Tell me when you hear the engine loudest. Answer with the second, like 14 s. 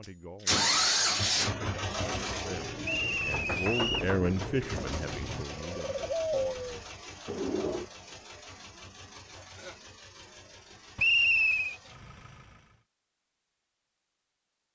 1 s.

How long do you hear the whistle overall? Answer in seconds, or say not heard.
2 s.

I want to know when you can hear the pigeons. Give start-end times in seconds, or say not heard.
2.4-7.8.